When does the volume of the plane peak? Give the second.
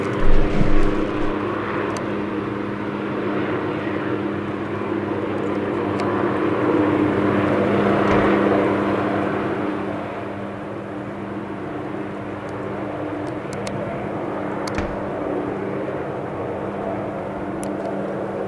8 s.